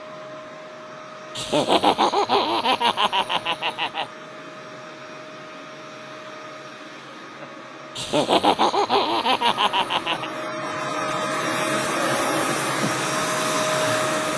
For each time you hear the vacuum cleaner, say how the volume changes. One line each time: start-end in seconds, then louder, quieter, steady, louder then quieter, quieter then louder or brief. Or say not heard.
0.0-14.3 louder.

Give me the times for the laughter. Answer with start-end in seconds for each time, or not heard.
1.4-4.0, 8.0-10.3.